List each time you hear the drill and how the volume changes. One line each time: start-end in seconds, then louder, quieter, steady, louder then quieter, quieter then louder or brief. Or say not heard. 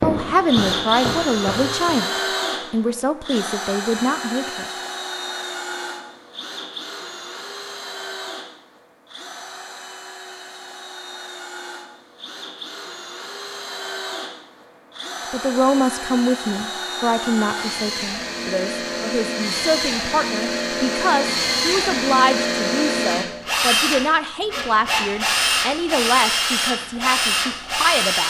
0.0-28.2 quieter then louder.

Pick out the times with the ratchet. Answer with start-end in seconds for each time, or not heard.
not heard.